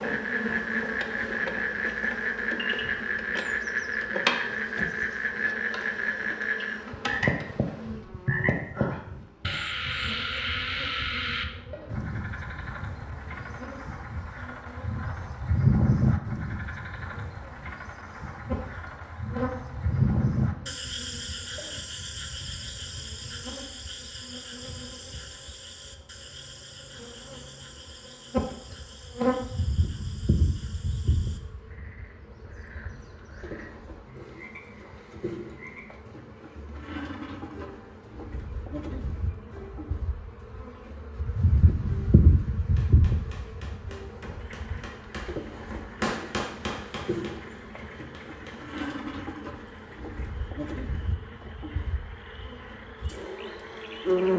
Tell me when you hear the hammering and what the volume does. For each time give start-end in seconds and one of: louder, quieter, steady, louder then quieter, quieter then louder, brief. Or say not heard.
42.8-49.0 louder then quieter.